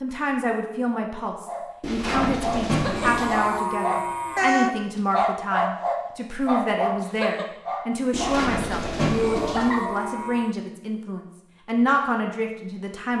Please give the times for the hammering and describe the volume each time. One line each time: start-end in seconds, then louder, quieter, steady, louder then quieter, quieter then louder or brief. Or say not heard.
not heard.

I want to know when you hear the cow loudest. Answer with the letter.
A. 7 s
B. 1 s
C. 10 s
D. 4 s
D.